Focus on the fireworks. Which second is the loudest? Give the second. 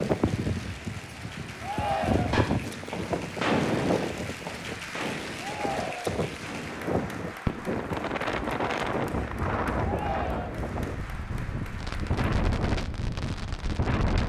4 s.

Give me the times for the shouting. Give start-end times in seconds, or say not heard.
1.6-2.4, 5.3-6.2, 9.8-10.7.